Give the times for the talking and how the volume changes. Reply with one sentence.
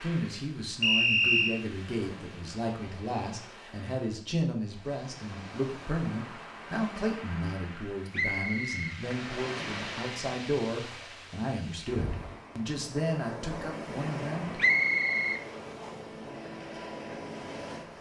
You can hear the talking from 0.0 to 14.6 s, at a steady volume.